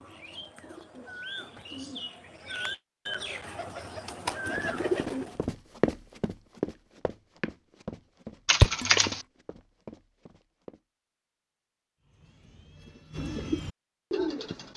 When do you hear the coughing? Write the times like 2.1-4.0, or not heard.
8.4-9.2.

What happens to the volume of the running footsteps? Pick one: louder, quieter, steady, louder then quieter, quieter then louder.
quieter.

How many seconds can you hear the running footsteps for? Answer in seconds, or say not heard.
6 s.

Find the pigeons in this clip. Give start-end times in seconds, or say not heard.
0.0-5.3, 12.0-14.7.